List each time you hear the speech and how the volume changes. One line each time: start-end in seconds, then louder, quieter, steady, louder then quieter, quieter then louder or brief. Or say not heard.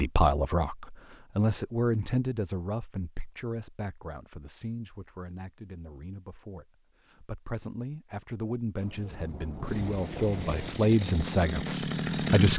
0.0-12.5 quieter then louder.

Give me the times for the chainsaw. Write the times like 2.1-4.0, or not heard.
9.7-12.5.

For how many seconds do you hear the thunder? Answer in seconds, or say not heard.
2 s.